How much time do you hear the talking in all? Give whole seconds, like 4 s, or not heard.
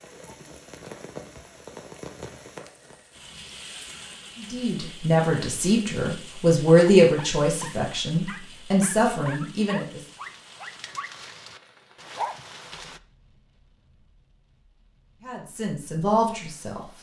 7 s.